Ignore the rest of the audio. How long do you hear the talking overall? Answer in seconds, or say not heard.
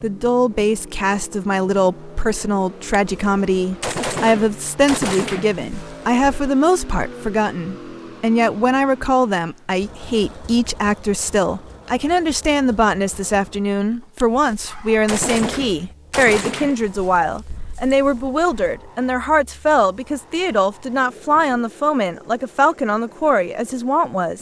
24 s.